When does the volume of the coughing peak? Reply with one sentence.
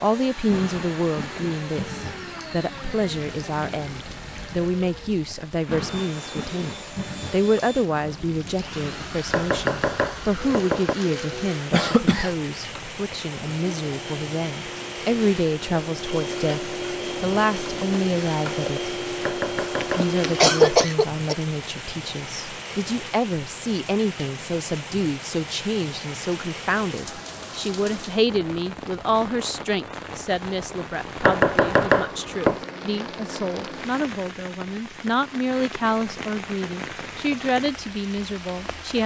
The loudest moment of the coughing is at 21 seconds.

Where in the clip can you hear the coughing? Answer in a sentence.
The coughing can be heard from 11.7 to 12.3 s and from 19.8 to 21.4 s.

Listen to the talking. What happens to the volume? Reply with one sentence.
The volume of the talking stays about the same.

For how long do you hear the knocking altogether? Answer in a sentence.
The knocking can be heard for 5 seconds in total.